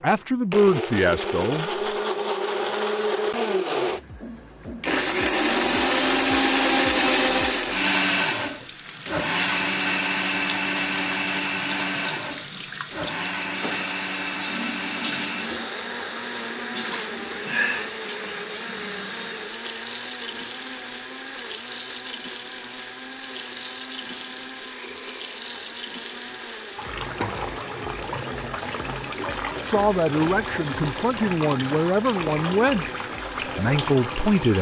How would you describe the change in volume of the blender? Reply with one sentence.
The loudness of the blender goes down.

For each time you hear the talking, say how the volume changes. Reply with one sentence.
The talking can be heard briefly from 0.0 to 1.7 s; and from 29.6 to 34.5 s, at a steady volume.